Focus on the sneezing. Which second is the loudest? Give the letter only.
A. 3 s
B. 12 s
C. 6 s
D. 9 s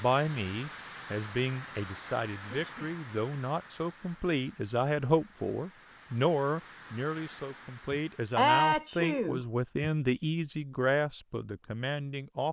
D.